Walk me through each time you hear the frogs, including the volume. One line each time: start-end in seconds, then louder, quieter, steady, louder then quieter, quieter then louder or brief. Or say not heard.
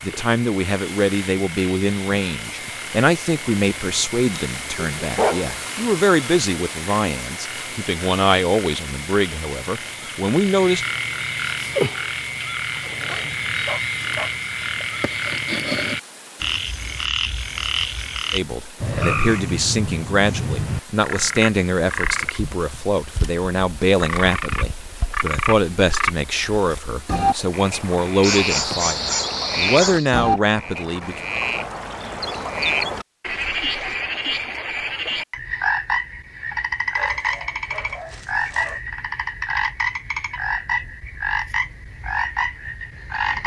0.0-43.4 louder.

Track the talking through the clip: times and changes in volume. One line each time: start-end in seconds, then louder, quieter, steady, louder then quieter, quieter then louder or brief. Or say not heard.
0.0-10.8 steady
18.3-31.2 steady.